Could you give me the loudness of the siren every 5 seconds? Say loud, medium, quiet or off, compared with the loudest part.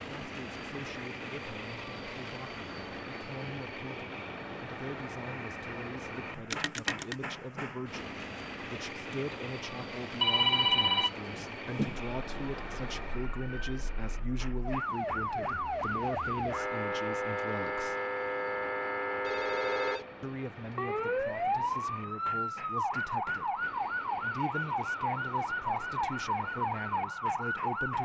off, off, medium, loud, loud, loud.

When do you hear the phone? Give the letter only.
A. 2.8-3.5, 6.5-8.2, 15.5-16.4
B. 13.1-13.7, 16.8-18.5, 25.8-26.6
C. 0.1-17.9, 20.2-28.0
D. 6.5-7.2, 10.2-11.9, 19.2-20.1
D.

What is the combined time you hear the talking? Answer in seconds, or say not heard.
26 s.